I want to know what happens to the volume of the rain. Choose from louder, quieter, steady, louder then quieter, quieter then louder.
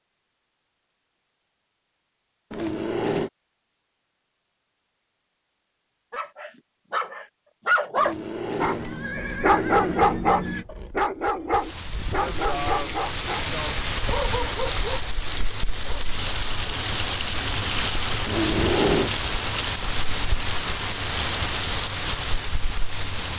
steady.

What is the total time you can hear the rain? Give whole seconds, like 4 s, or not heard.
12 s.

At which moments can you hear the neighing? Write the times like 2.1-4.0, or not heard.
2.5-3.3, 8.0-10.7, 18.2-19.1.